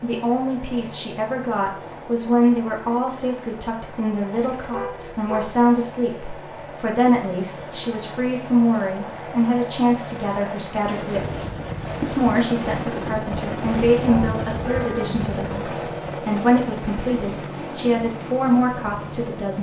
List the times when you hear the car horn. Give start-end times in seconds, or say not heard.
4.6-5.5, 14.1-15.1.